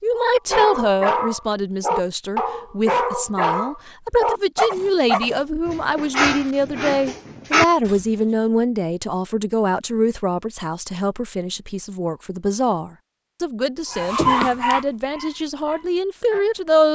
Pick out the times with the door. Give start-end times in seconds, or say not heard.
not heard.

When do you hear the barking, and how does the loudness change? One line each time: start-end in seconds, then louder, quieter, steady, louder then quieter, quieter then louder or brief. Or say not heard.
0.1-8.1 steady
13.9-16.6 brief.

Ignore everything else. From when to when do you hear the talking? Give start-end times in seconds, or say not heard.
0.0-16.8.